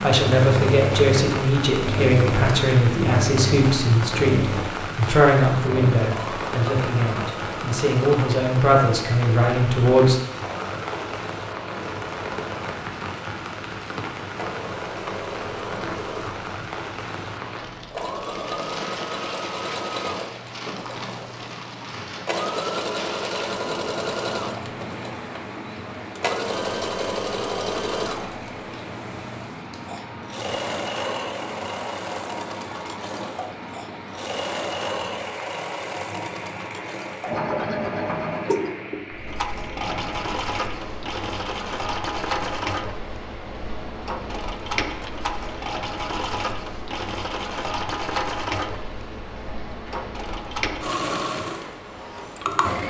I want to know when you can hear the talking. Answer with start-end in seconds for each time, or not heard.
0.0-10.2.